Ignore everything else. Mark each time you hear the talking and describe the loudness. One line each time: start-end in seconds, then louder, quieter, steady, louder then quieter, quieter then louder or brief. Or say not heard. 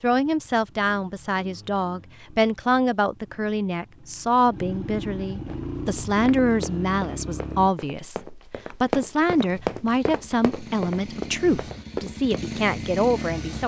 0.0-13.6 steady.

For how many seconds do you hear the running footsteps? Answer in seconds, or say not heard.
7 s.